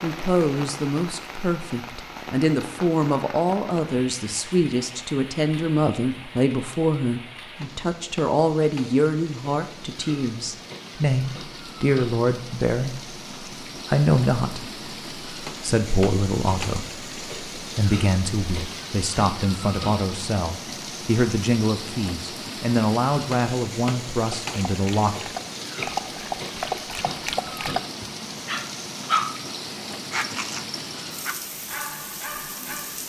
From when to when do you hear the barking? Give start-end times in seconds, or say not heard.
24.4-33.0.